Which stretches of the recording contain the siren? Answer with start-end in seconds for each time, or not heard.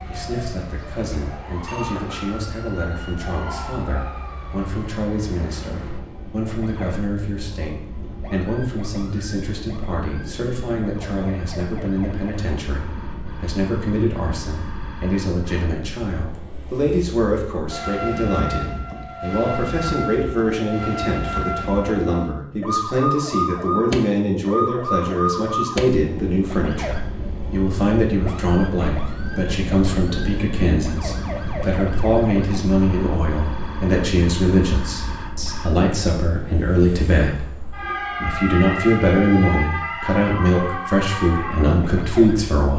0.0-42.7.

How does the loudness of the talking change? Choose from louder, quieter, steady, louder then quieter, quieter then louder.
louder.